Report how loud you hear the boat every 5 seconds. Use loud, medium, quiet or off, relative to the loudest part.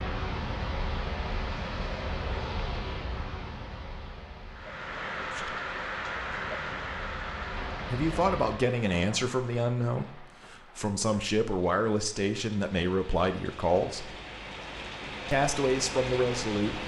loud, medium, off, off.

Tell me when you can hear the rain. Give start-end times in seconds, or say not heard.
4.5-16.8.